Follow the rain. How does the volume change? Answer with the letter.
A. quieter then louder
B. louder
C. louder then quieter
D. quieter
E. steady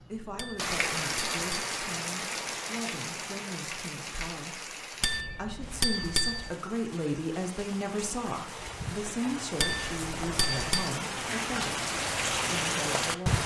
A.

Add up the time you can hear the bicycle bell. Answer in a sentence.
The bicycle bell can be heard for 4 seconds in total.